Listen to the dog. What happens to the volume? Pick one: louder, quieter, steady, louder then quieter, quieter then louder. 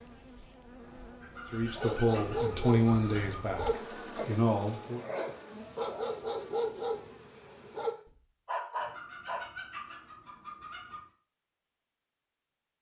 steady.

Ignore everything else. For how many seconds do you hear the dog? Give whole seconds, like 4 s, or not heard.
8 s.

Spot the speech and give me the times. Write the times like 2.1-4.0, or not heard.
1.5-5.0.